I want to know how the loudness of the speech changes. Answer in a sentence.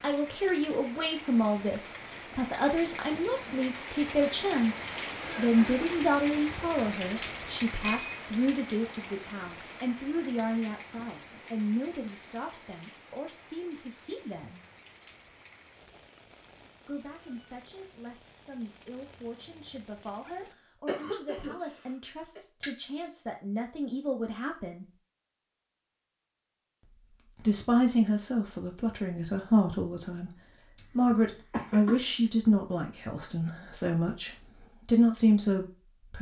The loudness of the speech goes down, then up.